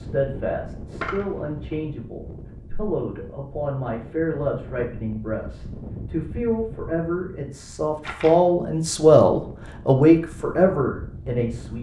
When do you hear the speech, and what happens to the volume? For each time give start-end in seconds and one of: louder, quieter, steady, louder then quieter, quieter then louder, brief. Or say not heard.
0.0-11.7 louder.